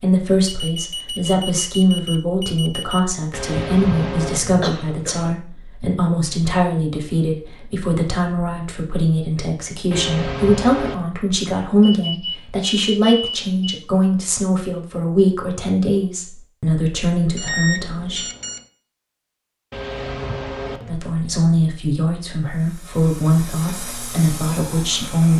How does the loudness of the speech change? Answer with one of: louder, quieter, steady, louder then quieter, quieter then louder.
steady.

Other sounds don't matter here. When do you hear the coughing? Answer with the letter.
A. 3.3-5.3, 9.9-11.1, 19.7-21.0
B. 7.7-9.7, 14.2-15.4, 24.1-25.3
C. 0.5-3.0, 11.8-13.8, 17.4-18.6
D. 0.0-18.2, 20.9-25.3
A.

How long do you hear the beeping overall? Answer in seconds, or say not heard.
6 s.